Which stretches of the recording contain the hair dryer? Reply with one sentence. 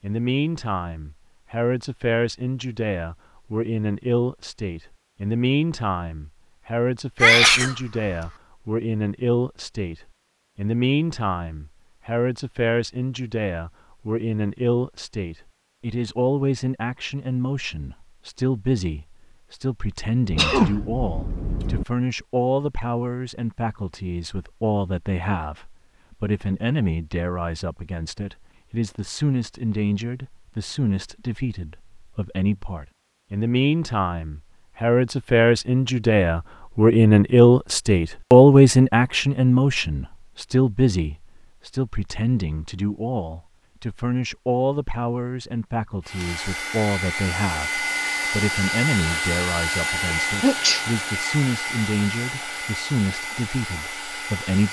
The hair dryer can be heard from 46.0 to 54.6 s.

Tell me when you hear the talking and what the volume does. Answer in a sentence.
You can hear the talking from 0.0 to 54.6 s, getting louder then quieter.